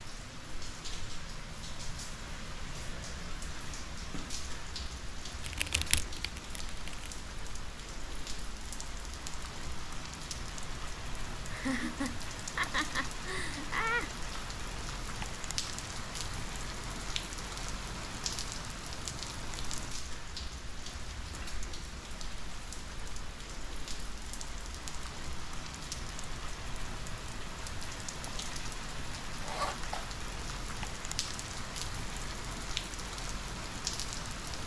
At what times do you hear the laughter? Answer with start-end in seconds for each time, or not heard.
11.5-14.1.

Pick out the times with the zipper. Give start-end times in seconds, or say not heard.
29.4-30.1.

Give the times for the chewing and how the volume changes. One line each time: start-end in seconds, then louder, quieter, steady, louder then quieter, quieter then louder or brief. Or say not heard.
not heard.